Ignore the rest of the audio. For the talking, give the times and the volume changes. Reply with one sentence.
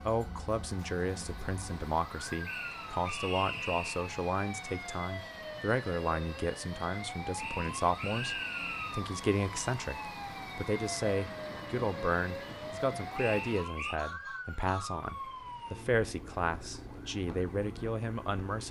The talking can be heard from 0.0 to 18.6 s, at a steady volume.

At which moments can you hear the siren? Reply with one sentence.
The siren can be heard from 0.0 to 18.6 s.